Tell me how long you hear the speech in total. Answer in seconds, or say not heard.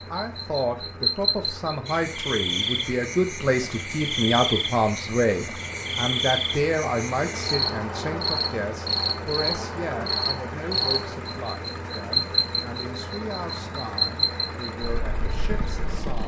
16 s.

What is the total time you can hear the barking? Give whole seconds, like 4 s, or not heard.
not heard.